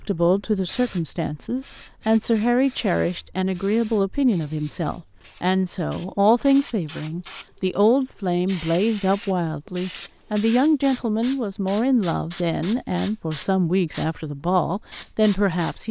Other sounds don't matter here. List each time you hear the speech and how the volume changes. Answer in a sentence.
The speech can be heard from 0.0 to 15.8 s, at a steady volume.